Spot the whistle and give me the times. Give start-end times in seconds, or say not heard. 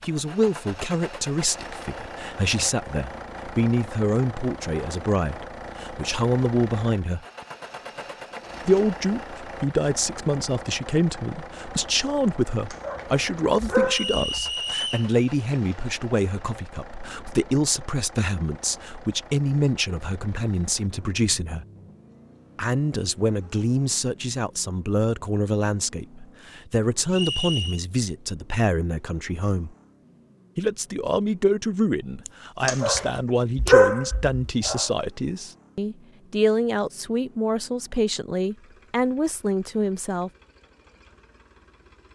13.8-15.1, 27.1-27.8.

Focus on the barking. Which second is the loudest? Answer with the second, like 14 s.
34 s.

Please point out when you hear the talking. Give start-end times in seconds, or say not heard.
0.0-7.2, 8.7-21.6, 22.6-29.7, 30.6-40.3.